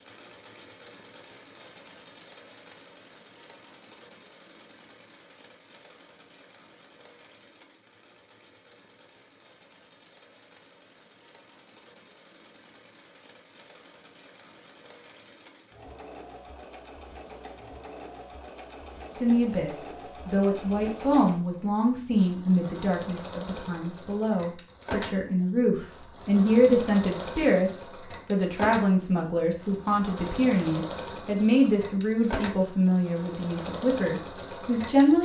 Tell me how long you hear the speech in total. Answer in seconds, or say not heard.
16 s.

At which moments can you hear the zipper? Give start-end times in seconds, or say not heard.
not heard.